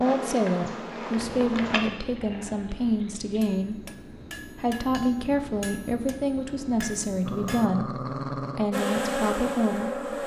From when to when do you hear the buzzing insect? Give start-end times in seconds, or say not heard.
0.0-1.9, 8.7-10.2.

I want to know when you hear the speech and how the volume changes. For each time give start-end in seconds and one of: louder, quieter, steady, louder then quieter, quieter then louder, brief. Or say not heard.
0.0-10.1 steady.